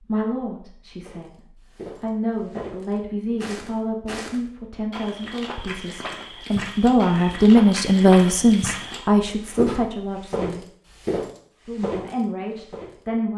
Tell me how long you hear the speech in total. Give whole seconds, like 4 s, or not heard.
12 s.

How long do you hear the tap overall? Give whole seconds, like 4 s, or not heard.
not heard.